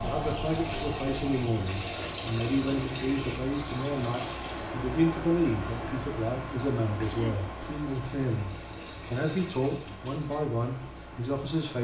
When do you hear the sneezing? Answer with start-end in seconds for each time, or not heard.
7.0-7.5.